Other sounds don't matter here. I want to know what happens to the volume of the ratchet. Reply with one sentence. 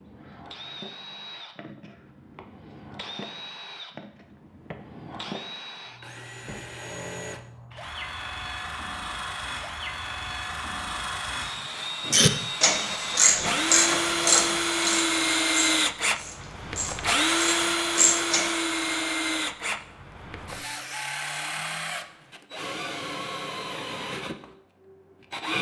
The volume of the ratchet goes down, then up.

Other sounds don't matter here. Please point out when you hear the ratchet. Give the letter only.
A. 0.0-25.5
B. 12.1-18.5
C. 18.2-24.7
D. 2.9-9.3
B.